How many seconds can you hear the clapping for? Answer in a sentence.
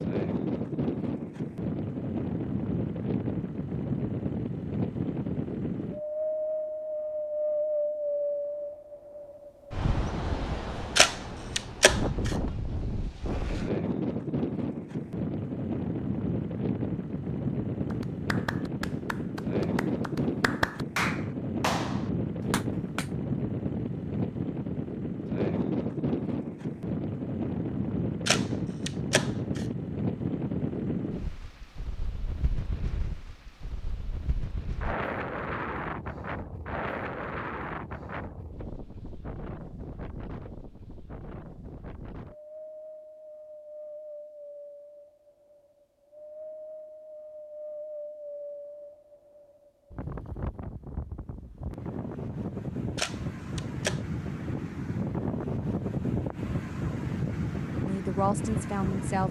You can hear the clapping for 5 seconds altogether.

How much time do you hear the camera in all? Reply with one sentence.
The camera can be heard for 4 seconds in total.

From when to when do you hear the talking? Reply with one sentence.
The talking can be heard from 57.7 to 59.2 s.